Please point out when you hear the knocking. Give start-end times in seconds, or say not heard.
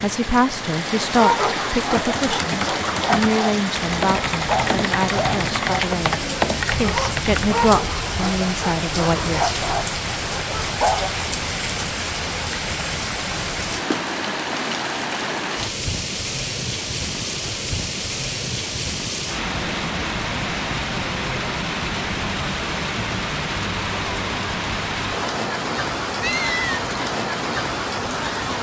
not heard.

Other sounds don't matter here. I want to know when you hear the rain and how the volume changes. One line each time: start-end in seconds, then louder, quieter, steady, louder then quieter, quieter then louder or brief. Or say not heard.
0.0-28.5 steady.